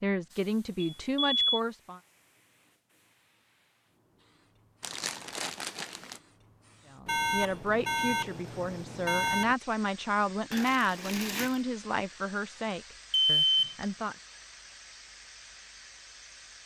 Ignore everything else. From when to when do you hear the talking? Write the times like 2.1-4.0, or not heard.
0.0-2.0, 6.9-14.2.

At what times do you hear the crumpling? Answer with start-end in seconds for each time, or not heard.
4.8-6.2, 10.5-11.7.